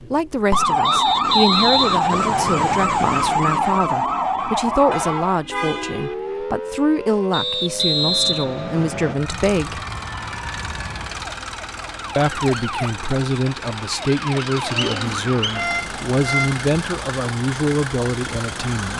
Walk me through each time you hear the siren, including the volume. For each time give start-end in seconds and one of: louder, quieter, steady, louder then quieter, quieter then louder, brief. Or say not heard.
0.0-18.9 quieter.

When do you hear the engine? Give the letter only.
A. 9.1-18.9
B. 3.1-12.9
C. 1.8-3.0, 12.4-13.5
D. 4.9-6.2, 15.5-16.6
A.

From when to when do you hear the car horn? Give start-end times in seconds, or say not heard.
4.9-6.2, 15.5-16.6.